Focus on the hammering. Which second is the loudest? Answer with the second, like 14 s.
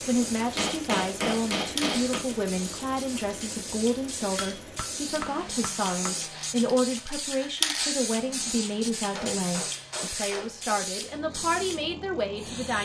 1 s.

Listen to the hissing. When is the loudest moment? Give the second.
8 s.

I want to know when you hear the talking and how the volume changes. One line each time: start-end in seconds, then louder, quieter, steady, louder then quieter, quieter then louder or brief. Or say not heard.
0.1-12.7 steady.